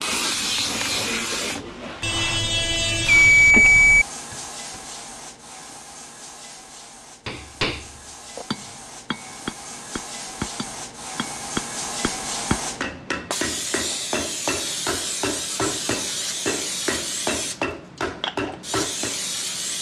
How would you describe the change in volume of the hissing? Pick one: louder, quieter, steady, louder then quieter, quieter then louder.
quieter then louder.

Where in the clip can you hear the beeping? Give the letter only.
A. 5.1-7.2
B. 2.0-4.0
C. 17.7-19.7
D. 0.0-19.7
B.